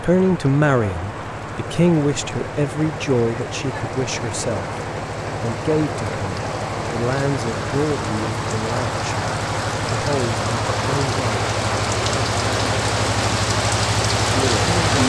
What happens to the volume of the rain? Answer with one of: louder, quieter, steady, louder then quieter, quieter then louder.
louder.